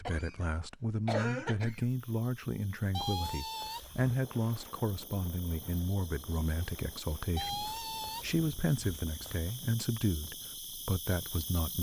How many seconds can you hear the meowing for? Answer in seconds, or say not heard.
3 s.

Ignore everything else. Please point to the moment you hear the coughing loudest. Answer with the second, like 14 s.
1 s.